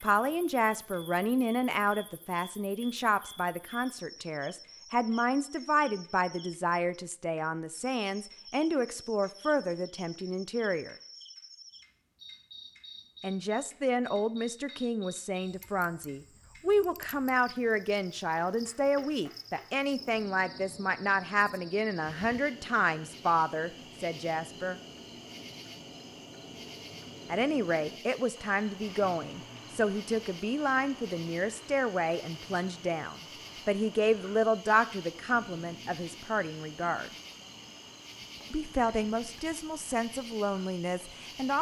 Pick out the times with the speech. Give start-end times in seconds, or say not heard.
0.0-10.9, 13.2-24.8, 27.3-37.1, 38.5-41.5.